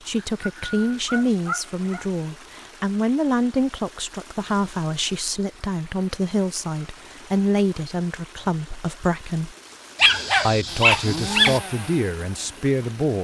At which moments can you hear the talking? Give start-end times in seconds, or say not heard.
0.1-9.6, 10.4-13.2.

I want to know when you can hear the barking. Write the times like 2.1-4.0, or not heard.
0.1-2.0, 9.9-11.6.